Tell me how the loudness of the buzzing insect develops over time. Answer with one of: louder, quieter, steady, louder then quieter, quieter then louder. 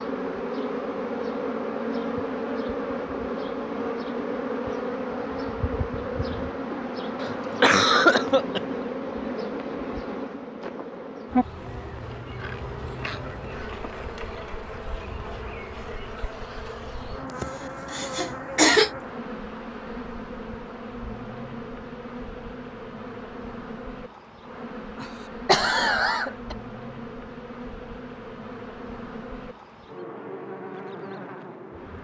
quieter.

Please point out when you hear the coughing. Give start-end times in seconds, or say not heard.
7.2-8.6, 17.4-18.9, 25.0-26.6.